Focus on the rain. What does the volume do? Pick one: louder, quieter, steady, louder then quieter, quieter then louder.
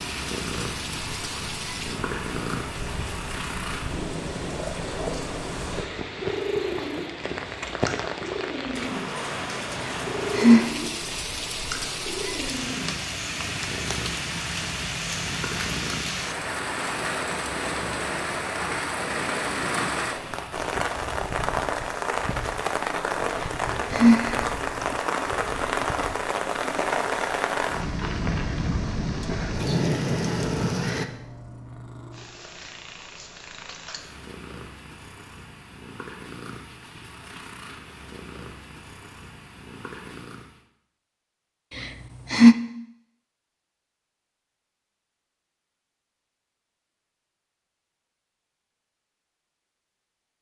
louder.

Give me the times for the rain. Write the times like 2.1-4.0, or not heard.
0.0-31.1.